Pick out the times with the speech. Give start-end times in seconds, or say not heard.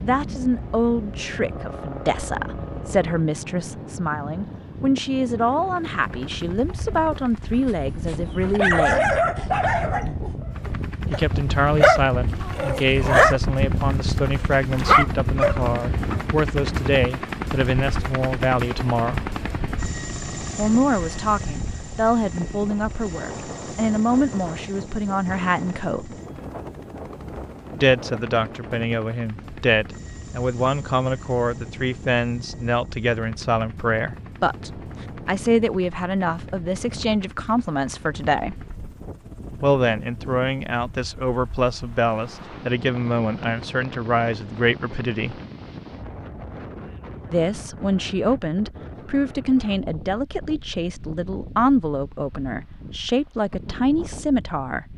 0.0-9.2, 11.1-19.2, 20.6-26.1, 27.8-38.6, 39.6-45.4, 47.3-54.9.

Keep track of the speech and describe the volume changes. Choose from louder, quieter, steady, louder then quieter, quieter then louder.
steady.